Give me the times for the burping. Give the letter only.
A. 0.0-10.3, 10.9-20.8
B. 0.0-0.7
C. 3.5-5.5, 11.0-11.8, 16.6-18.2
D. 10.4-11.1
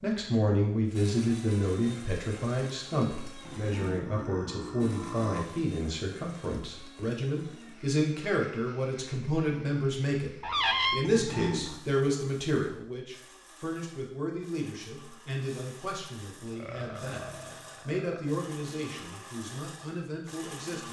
C.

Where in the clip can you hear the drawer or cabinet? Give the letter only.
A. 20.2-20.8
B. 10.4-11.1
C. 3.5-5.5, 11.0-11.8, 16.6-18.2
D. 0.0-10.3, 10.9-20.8
B.